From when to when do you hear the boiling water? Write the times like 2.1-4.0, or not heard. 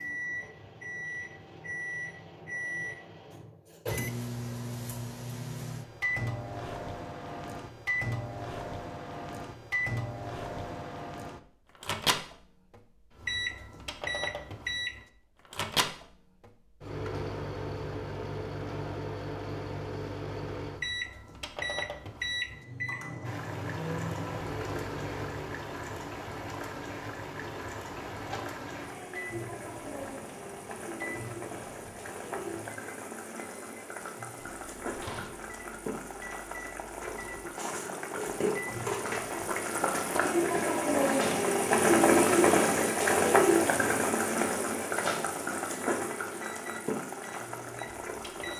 23.2-48.5.